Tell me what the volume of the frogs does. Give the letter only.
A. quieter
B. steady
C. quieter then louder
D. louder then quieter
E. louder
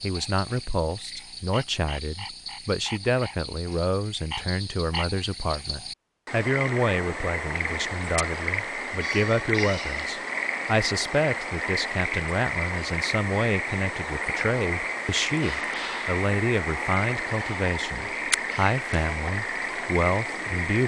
E.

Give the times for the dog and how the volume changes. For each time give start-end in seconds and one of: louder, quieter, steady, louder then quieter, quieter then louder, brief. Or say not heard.
not heard.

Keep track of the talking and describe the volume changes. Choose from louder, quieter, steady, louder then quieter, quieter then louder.
steady.